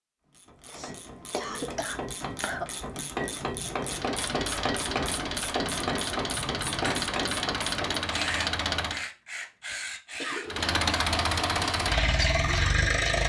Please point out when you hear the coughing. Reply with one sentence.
The coughing can be heard from 0.7 to 2.6 s, from 6.3 to 7.0 s and from 10.2 to 10.7 s.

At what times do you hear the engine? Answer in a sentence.
The engine can be heard from 3.9 to 9.1 s and from 10.4 to 13.2 s.